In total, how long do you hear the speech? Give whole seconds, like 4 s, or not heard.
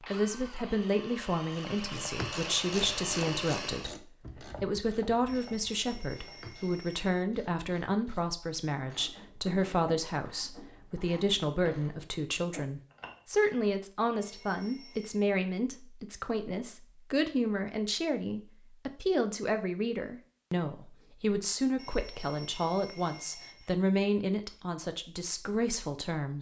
26 s.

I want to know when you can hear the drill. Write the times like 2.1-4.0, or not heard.
0.0-4.0.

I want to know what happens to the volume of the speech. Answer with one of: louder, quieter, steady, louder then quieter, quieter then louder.
steady.